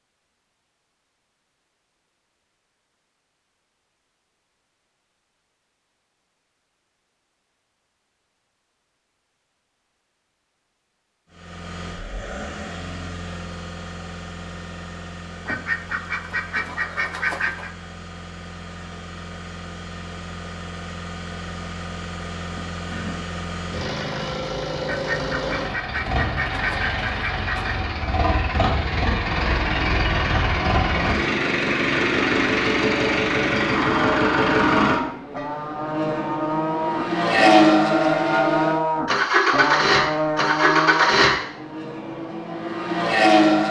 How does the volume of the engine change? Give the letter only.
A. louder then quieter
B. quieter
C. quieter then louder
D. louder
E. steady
D.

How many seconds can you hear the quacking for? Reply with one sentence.
You can hear the quacking for 5 seconds altogether.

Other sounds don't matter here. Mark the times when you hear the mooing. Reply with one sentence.
You can hear the mooing from 34.0 to 41.3 s.